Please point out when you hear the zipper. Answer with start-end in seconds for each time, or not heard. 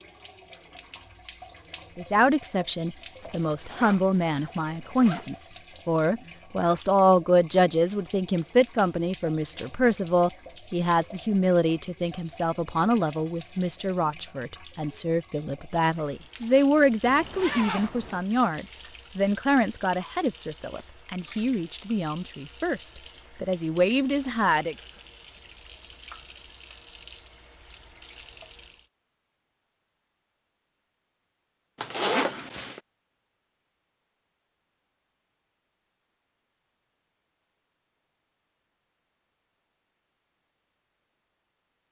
3.2-5.4, 17.0-18.2, 31.8-32.8.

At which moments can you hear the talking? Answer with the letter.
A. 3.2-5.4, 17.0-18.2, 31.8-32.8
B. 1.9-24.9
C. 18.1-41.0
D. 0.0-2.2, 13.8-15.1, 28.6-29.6
B.